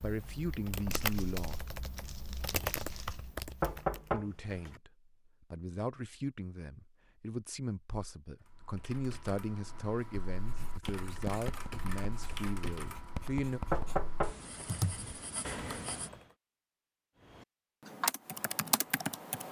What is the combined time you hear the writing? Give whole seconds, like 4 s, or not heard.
6 s.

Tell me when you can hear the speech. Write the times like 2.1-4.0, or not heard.
0.0-1.6, 4.1-13.6.